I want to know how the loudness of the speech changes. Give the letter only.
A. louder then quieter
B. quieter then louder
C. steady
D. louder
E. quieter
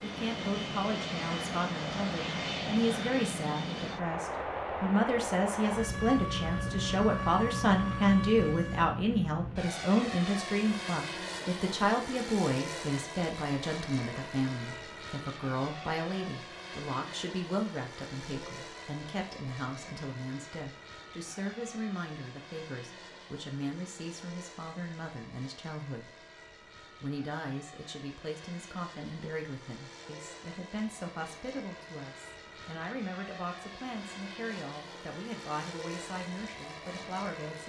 E.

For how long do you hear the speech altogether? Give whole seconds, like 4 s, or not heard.
37 s.